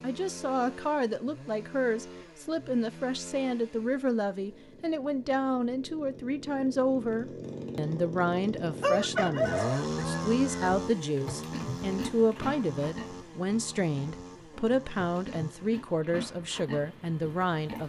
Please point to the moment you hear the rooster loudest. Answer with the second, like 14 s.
9 s.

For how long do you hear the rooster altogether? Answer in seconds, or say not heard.
2 s.